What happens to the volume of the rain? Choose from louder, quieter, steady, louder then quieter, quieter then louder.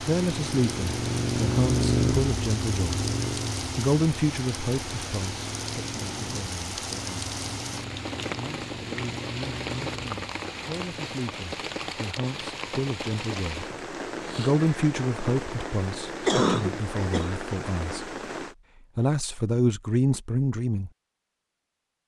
steady.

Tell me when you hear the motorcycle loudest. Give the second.
2 s.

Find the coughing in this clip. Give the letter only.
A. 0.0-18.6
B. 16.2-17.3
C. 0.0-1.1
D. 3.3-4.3
B.